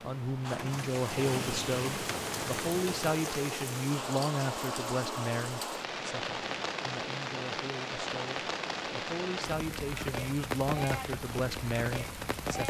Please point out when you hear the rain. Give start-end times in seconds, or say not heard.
0.0-12.6.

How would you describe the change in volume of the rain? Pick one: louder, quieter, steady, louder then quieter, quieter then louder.
steady.